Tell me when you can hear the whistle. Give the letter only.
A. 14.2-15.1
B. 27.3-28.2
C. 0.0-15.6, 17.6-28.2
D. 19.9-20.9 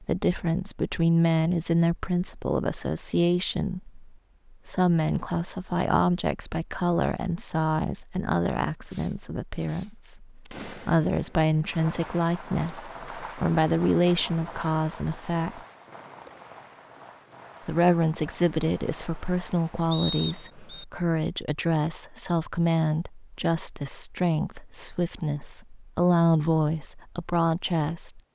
D.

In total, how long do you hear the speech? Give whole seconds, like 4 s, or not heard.
26 s.